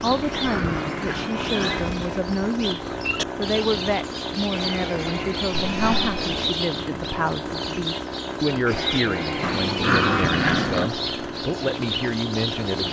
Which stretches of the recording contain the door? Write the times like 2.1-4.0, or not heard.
not heard.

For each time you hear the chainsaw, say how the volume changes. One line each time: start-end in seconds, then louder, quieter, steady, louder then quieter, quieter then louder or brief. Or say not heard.
0.0-12.8 steady.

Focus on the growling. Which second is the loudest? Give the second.
10 s.